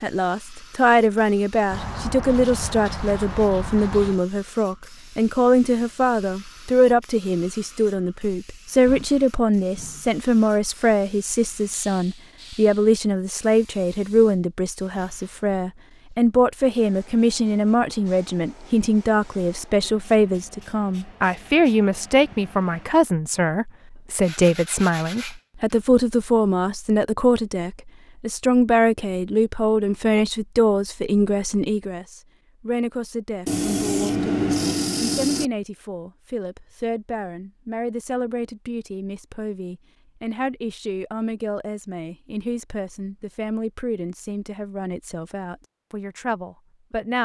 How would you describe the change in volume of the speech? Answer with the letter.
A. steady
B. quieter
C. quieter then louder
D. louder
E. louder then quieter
B.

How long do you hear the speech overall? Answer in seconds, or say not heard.
47 s.